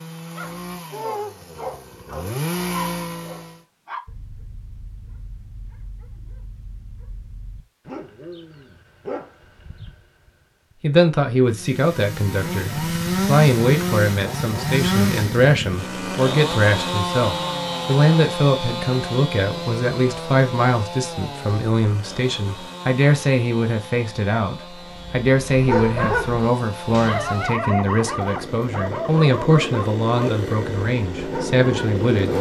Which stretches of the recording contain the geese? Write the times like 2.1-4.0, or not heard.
not heard.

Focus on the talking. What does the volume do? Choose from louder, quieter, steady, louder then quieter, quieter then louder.
steady.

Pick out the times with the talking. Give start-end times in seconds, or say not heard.
10.8-32.3.